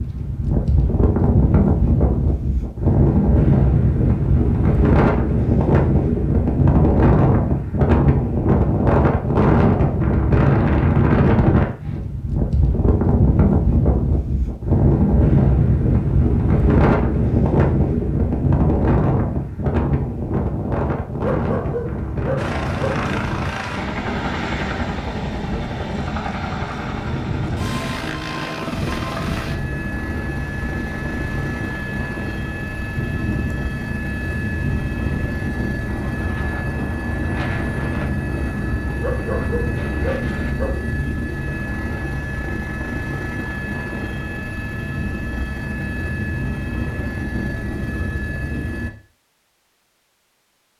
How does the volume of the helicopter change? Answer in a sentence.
The volume of the helicopter stays about the same.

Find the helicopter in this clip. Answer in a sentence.
You can hear the helicopter from 22.4 to 48.9 s.